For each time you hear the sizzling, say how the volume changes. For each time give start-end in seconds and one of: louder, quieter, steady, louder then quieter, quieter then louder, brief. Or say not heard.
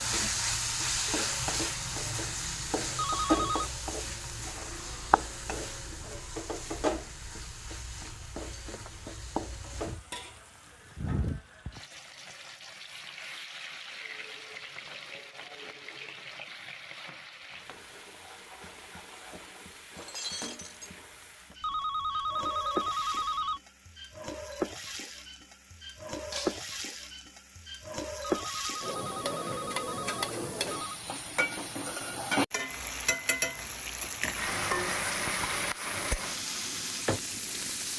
0.0-37.9 quieter then louder.